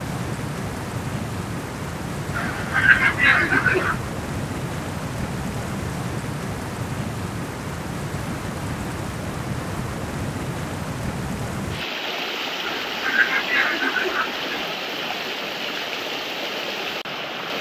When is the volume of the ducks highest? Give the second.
3 s.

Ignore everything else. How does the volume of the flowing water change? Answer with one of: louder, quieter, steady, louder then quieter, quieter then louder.
steady.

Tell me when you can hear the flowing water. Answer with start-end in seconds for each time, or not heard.
0.0-17.5.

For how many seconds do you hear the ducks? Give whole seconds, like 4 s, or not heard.
4 s.